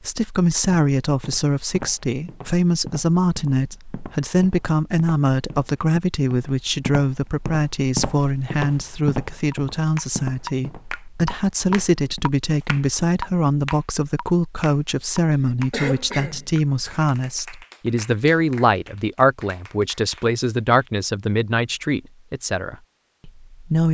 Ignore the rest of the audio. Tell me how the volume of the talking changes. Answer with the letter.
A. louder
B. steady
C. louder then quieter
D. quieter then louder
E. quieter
B.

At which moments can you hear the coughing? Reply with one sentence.
The coughing can be heard from 15.7 to 16.5 s.